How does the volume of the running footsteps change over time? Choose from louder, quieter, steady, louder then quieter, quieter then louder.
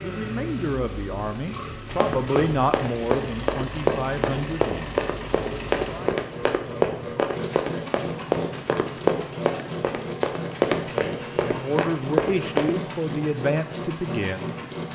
steady.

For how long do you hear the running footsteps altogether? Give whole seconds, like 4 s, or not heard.
11 s.